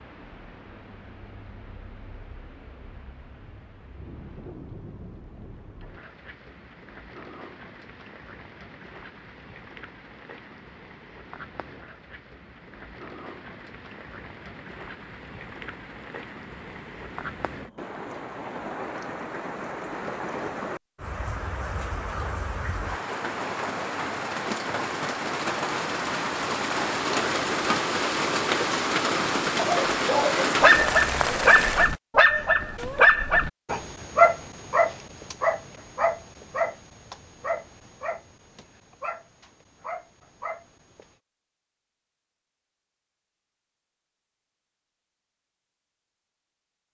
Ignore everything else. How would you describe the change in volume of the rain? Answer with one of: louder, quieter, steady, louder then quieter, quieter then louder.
louder.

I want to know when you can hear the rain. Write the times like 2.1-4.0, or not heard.
0.0-31.9.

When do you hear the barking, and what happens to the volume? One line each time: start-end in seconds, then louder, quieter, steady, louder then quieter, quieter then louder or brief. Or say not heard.
29.6-41.1 quieter.